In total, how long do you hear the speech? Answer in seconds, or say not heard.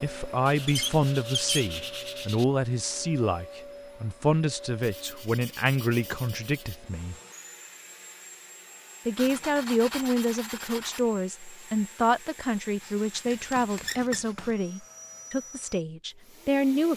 15 s.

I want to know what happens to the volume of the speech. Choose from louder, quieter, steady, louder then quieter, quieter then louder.
steady.